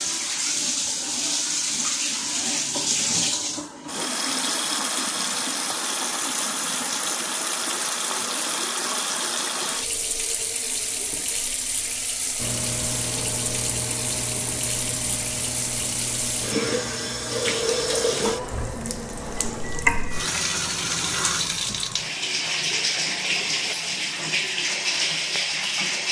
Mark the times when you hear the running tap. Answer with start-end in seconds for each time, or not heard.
0.0-26.0.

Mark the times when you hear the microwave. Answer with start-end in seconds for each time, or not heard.
12.3-21.6.